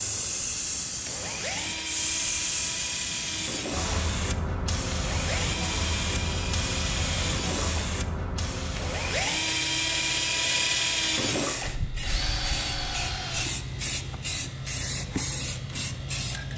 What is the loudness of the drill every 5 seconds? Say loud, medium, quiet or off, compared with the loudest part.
medium, loud, loud, off.